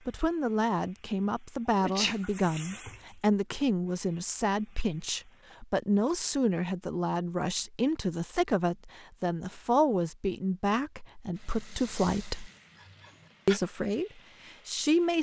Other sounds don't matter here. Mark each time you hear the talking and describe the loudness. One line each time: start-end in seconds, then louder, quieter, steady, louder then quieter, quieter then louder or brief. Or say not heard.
0.1-12.5 steady
13.4-15.1 brief.